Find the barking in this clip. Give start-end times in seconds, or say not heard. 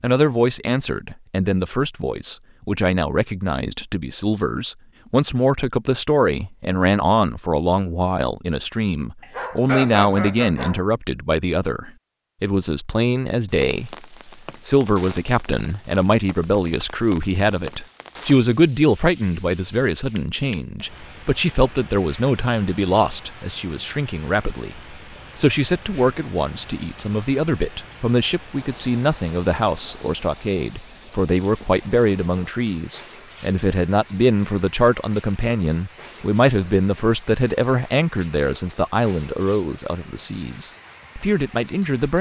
9.2-10.8.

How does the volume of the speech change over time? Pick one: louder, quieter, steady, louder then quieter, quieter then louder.
steady.